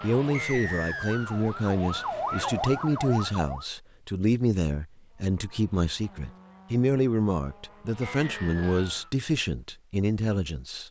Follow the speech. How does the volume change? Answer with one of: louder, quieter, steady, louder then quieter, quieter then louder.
steady.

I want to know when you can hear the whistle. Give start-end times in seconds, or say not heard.
0.3-1.4, 8.2-9.2.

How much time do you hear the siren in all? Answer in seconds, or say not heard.
4 s.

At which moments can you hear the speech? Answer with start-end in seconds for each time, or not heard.
0.0-10.8.